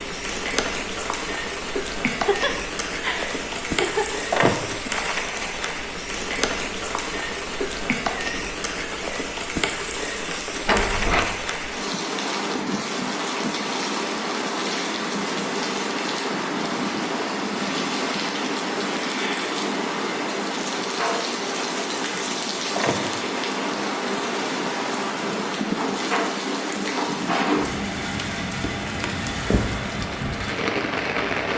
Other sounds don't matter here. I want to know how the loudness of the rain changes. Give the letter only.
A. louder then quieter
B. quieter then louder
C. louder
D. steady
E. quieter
D.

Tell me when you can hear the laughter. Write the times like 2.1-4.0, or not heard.
2.1-4.2.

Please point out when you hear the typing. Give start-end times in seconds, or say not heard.
not heard.